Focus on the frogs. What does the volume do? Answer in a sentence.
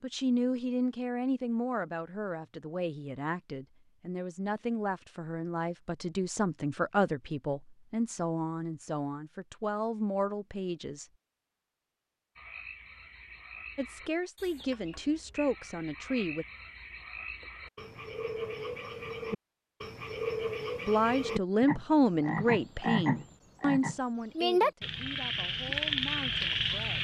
The loudness of the frogs goes up.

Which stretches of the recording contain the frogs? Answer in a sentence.
You can hear the frogs from 12.3 to 26.9 s.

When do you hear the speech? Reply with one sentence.
You can hear the speech from 0.0 to 11.1 s, from 13.8 to 16.4 s and from 20.9 to 26.9 s.